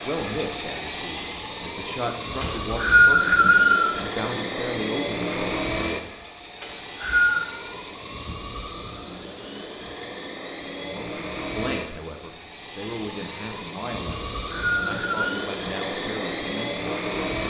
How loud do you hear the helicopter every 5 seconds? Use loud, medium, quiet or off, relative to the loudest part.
loud, loud, medium, loud.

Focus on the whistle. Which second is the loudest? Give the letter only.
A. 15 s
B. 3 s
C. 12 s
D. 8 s
B.